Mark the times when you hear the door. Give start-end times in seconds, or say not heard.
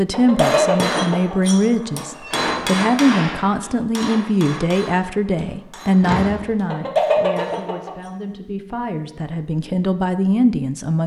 2.1-3.8, 6.0-6.5.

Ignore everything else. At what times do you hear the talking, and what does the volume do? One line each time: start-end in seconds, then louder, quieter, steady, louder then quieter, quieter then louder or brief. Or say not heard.
0.0-11.0 quieter then louder.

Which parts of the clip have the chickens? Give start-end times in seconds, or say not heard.
0.1-1.4, 6.7-7.9.